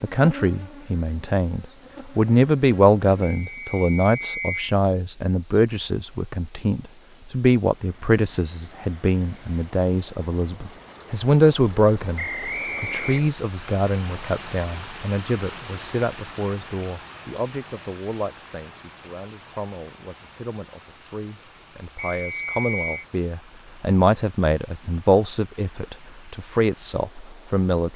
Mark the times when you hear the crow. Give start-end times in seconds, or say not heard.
not heard.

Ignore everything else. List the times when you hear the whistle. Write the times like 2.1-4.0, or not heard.
3.2-4.7, 12.2-13.4, 21.9-23.1.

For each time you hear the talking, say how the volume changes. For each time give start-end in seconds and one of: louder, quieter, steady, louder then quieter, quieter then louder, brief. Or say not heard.
0.0-27.9 quieter then louder.